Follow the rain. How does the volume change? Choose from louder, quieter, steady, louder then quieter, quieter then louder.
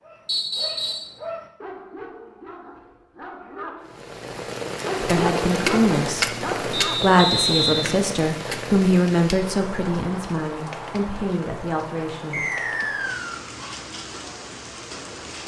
quieter.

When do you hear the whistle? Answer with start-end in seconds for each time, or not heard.
0.2-1.1, 6.7-8.0, 12.3-13.4.